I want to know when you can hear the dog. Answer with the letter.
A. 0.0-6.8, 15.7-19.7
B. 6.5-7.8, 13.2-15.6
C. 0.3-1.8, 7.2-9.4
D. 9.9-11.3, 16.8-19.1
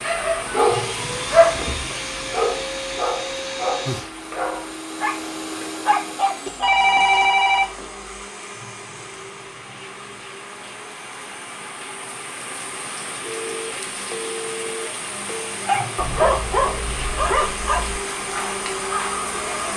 A.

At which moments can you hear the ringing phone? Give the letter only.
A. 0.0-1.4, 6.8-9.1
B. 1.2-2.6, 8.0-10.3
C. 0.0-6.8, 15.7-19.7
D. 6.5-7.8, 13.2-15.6
D.